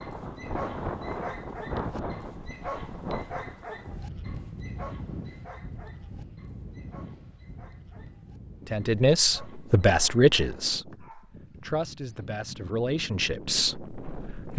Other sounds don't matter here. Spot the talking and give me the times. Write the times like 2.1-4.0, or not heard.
8.7-14.5.